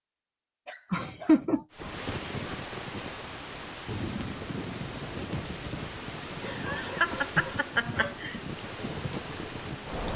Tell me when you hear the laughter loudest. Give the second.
1 s.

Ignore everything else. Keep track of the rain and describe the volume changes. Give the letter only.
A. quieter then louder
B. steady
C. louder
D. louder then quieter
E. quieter
B.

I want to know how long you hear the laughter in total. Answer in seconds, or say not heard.
3 s.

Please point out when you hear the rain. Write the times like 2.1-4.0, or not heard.
1.7-10.1.